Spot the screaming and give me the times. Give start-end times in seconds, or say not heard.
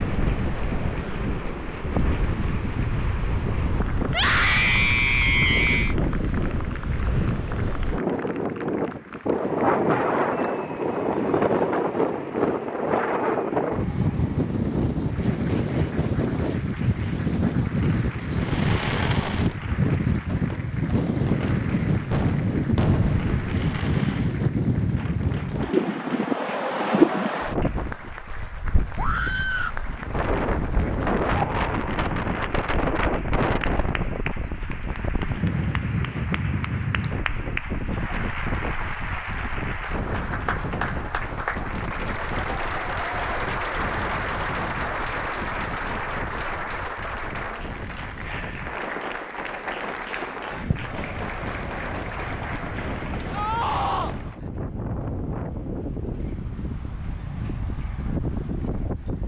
4.0-6.0, 28.9-29.8, 53.3-54.1.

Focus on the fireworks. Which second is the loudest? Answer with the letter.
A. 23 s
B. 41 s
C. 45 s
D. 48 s
A.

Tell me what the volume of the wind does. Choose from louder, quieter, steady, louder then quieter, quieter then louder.
quieter.